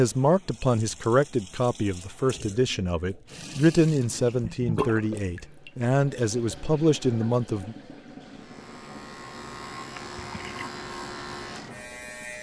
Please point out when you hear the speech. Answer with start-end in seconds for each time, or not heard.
0.0-7.8.